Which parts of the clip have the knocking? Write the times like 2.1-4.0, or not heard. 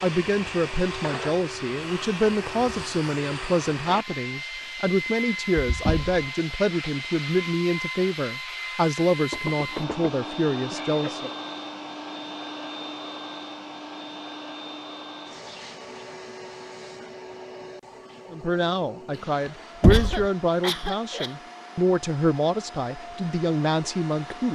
5.8-6.2, 9.3-10.1, 19.8-20.2.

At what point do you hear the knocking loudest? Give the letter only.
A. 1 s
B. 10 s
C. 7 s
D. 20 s
D.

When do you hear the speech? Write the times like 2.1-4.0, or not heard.
0.0-11.3, 18.3-24.5.